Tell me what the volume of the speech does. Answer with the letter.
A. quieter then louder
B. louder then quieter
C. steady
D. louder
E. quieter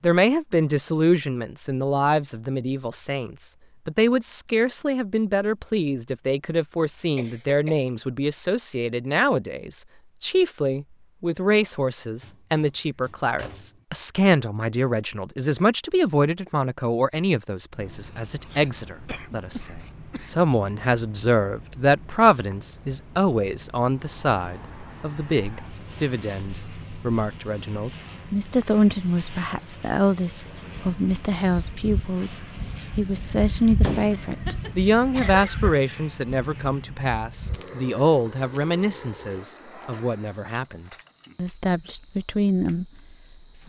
C.